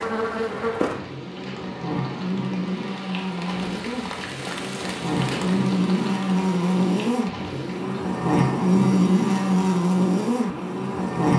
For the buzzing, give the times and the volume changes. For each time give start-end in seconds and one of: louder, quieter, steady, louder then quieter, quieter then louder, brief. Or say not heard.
0.0-11.3 louder.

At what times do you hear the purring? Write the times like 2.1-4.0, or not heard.
not heard.